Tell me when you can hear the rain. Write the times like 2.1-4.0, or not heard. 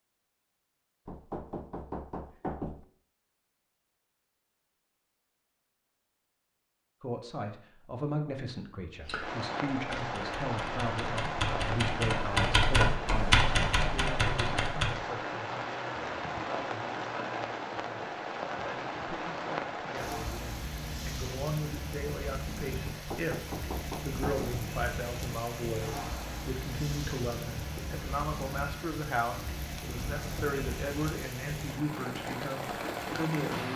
9.2-33.7.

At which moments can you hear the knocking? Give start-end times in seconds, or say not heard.
1.1-2.9, 22.9-24.6.